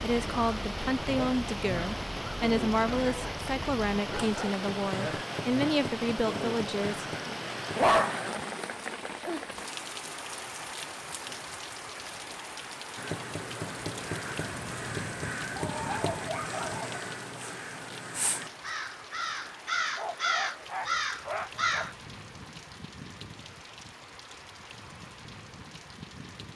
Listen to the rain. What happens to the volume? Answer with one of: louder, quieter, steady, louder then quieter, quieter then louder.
quieter.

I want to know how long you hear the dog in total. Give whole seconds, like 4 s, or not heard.
6 s.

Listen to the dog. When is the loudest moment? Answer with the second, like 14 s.
8 s.